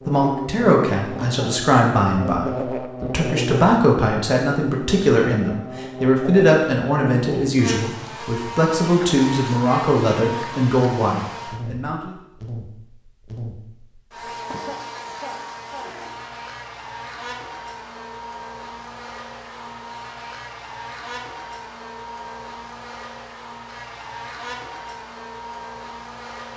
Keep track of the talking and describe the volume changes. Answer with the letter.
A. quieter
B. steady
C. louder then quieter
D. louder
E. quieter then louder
B.